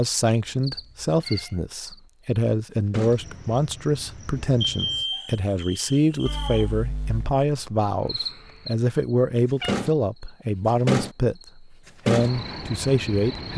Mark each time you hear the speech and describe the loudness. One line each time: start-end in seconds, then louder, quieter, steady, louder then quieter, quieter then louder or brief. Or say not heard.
0.0-13.5 steady.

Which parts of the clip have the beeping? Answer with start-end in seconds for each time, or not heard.
4.3-5.2.